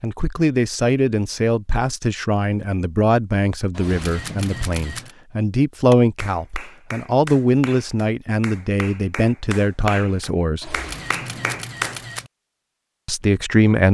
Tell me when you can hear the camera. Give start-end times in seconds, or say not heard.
3.7-5.2, 10.6-12.3.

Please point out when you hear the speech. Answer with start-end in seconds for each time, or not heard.
0.0-10.8, 13.1-13.8.